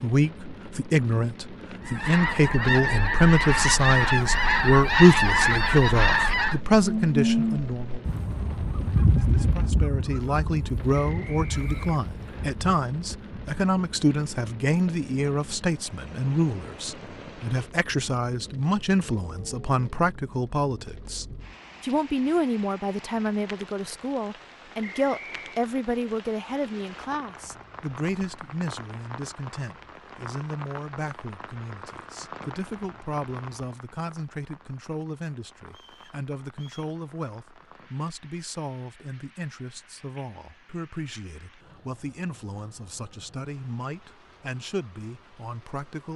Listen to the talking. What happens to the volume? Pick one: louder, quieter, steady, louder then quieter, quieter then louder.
quieter.